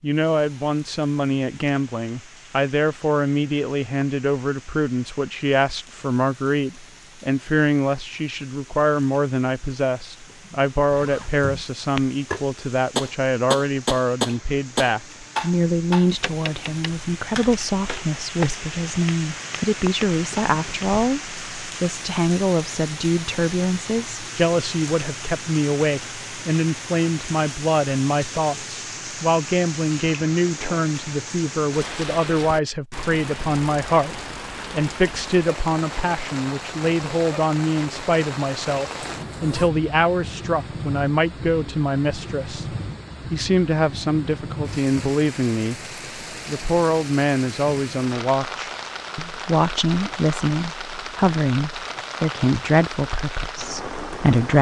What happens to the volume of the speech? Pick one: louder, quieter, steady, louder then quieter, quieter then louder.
steady.